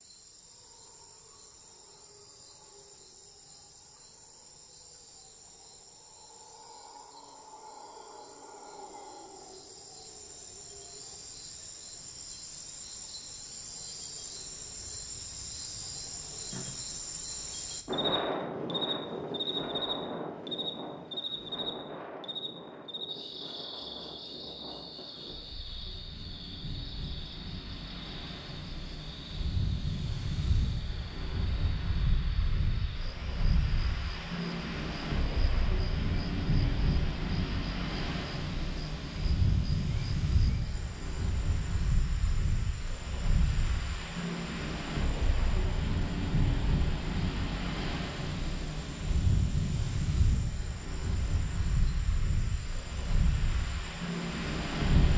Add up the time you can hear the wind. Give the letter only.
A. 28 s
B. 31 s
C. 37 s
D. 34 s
C.